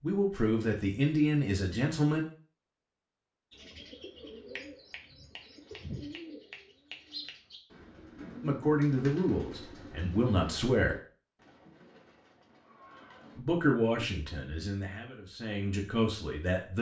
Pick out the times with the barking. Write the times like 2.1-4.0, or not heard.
not heard.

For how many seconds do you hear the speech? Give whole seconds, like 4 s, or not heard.
8 s.